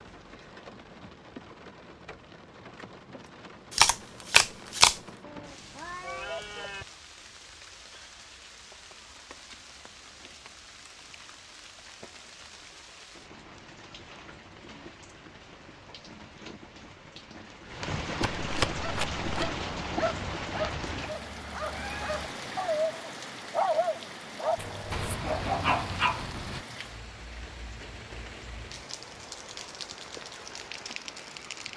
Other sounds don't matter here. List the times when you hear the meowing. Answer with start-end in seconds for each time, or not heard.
5.2-6.8, 21.7-22.8.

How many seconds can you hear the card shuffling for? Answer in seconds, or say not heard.
3 s.